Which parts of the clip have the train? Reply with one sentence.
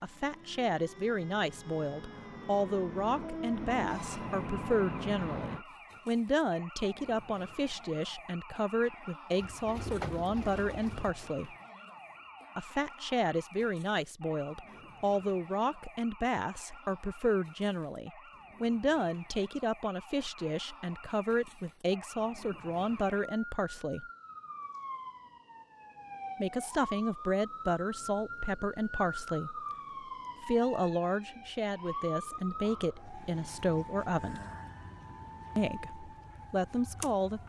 The train can be heard from 0.0 to 5.7 s.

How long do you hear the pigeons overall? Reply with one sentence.
The pigeons can be heard for 2 seconds in total.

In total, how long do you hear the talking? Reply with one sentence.
The talking can be heard for 32 seconds in total.